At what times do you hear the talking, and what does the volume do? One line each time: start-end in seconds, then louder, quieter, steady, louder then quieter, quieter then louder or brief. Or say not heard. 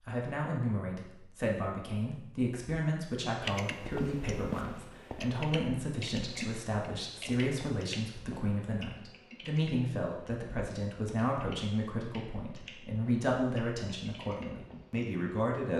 0.0-15.7 steady.